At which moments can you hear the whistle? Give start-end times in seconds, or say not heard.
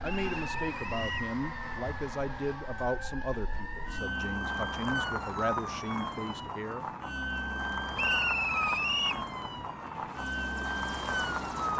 0.0-1.3, 8.0-9.2.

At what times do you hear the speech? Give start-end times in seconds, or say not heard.
0.0-6.8.